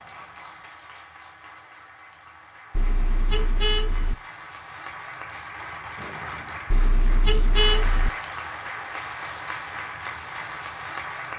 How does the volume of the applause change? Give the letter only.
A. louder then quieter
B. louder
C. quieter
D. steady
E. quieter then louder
B.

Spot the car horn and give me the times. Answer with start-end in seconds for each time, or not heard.
2.7-4.2, 6.7-8.1.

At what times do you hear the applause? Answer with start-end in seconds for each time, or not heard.
0.0-11.3.